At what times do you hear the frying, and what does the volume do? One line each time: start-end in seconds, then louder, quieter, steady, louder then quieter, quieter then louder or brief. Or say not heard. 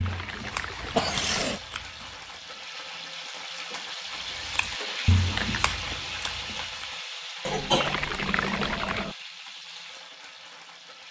0.0-11.0 louder then quieter.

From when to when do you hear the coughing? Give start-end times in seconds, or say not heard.
0.9-1.6, 7.5-9.2.